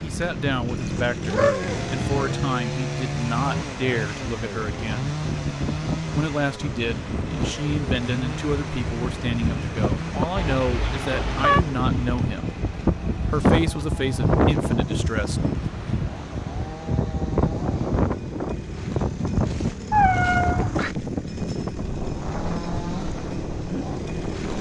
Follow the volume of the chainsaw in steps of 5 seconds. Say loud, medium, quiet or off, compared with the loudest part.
loud, loud, medium, medium, loud.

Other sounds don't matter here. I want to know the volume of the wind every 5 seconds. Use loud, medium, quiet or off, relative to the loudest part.
medium, medium, loud, loud, medium.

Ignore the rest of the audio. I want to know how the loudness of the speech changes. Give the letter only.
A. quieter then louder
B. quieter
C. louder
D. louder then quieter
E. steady
E.